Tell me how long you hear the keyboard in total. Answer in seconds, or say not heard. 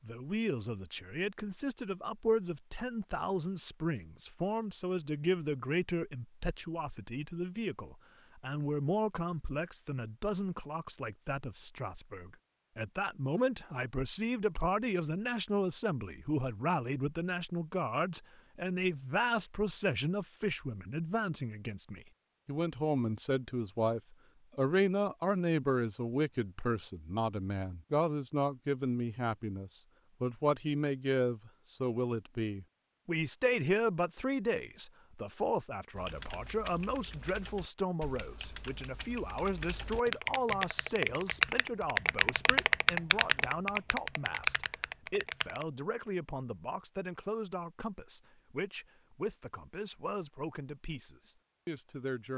10 s.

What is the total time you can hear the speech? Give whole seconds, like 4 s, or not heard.
52 s.